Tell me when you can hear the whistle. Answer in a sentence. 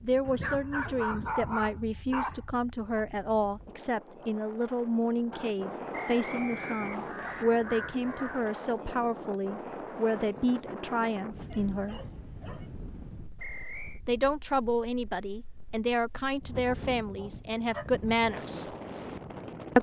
You can hear the whistle from 6.1 to 7.5 s and from 13.3 to 14.0 s.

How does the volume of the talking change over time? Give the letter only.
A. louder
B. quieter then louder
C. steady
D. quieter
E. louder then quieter
C.